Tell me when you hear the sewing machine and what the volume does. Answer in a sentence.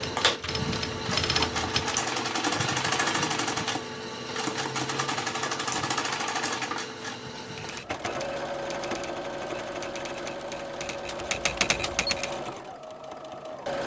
The sewing machine can be heard from 0.0 to 13.8 s, getting quieter.